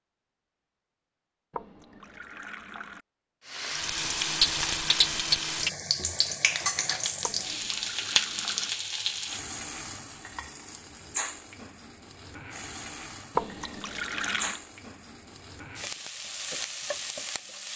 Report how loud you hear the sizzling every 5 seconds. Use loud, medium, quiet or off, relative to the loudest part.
loud, loud, quiet, medium.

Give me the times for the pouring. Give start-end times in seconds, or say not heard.
1.5-3.0, 7.2-8.7, 13.3-14.6.